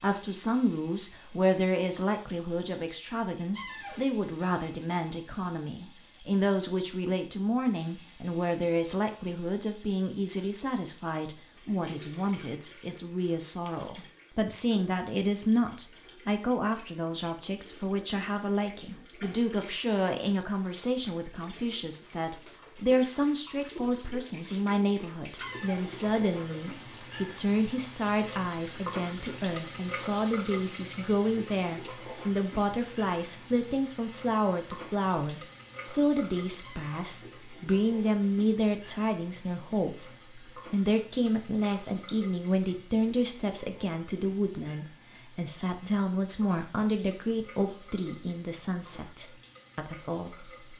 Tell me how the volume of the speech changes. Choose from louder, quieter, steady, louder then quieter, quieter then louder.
steady.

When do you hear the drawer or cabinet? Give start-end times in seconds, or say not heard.
3.5-4.0, 25.4-25.9, 36.6-37.1.